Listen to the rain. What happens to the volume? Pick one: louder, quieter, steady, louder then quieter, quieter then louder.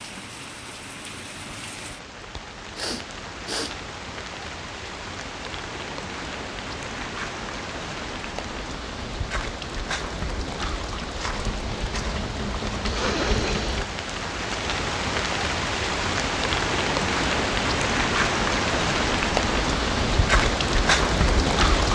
louder.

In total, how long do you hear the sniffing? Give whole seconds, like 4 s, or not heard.
2 s.